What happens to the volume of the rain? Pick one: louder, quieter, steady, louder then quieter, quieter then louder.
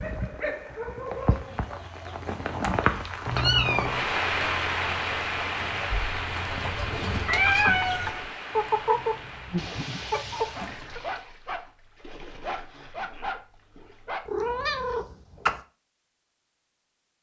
louder then quieter.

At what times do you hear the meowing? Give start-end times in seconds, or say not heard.
3.2-4.0, 5.9-8.3, 14.2-15.6.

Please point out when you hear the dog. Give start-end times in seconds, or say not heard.
0.0-1.6, 9.6-14.2.